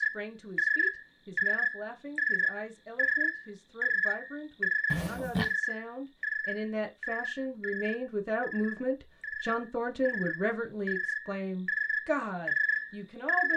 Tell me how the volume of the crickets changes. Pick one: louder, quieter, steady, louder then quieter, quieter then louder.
quieter then louder.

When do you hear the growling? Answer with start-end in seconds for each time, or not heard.
4.9-5.5.